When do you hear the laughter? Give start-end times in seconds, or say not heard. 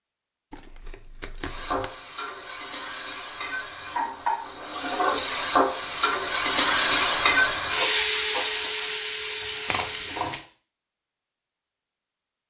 not heard.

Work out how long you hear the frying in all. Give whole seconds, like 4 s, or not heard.
9 s.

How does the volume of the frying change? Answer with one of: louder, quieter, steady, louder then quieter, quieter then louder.
louder then quieter.